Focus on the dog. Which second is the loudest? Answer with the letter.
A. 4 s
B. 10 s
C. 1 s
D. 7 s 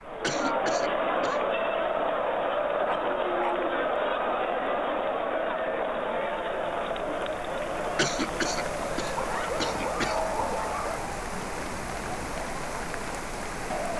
B.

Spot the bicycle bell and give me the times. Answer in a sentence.
You can't hear the bicycle bell here.